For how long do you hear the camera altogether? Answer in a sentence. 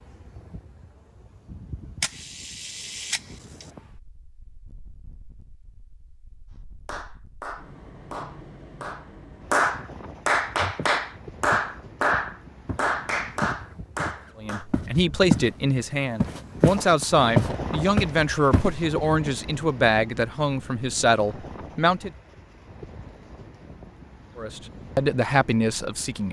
You can hear the camera for 2 seconds altogether.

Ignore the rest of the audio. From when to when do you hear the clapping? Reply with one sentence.
The clapping can be heard from 6.8 to 14.7 s.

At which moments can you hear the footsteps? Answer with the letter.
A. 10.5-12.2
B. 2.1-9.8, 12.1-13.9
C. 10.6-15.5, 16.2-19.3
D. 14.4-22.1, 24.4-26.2
C.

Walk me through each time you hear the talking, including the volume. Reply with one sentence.
The talking can be heard from 14.4 to 22.1 s, at a steady volume; and briefly from 24.4 to 26.2 s.